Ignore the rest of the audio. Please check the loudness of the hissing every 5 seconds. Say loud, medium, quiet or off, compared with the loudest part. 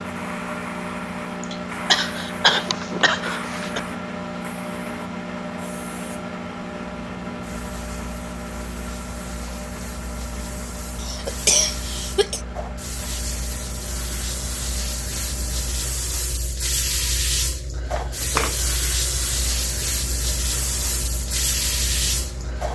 medium, quiet, medium, loud, loud.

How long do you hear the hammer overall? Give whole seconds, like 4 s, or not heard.
not heard.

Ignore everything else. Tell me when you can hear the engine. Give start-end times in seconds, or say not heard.
0.0-16.0, 19.2-22.7.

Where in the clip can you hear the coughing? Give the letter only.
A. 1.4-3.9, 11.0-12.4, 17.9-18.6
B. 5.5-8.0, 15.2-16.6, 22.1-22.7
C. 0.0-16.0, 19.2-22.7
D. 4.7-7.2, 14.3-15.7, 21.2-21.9
A.